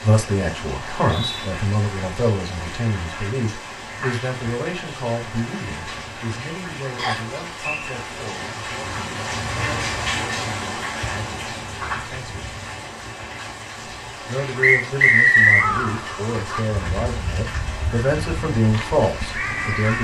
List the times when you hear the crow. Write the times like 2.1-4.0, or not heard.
15.4-20.0.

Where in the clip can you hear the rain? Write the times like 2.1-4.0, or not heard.
0.0-20.0.